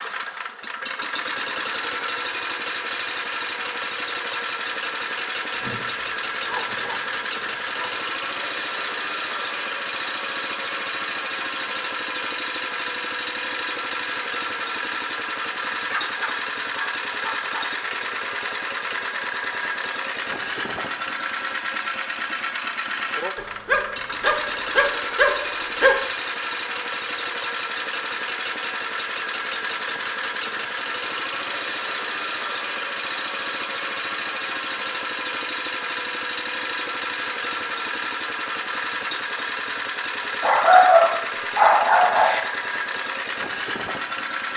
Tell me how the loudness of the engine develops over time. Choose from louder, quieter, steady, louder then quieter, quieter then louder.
steady.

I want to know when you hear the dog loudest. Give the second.
41 s.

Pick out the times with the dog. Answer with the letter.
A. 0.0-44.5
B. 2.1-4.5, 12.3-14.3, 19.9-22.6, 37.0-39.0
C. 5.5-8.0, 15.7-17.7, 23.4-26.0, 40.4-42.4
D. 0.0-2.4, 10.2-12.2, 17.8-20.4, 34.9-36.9
C.